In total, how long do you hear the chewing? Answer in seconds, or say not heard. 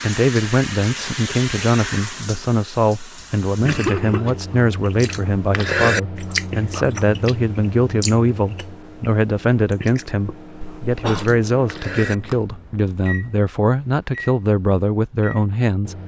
9 s.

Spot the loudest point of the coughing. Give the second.
4 s.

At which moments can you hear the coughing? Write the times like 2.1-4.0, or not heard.
3.2-4.4, 10.6-11.4.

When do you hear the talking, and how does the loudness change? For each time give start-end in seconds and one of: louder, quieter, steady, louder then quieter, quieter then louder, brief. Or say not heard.
0.0-15.9 steady.